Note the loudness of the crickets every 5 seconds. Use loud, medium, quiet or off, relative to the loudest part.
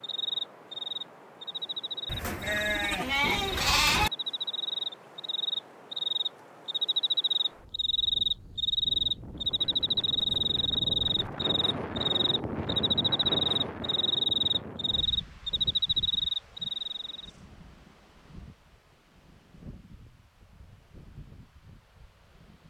medium, loud, loud, loud, off.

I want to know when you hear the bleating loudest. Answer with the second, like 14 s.
4 s.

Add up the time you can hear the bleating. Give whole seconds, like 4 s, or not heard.
2 s.